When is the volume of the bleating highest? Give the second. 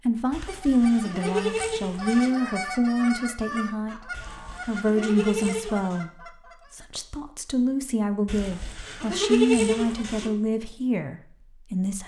9 s.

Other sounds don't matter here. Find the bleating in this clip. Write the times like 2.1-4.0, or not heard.
0.3-2.4, 4.1-6.0, 8.2-10.3.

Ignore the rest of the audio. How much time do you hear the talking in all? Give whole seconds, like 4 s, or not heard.
11 s.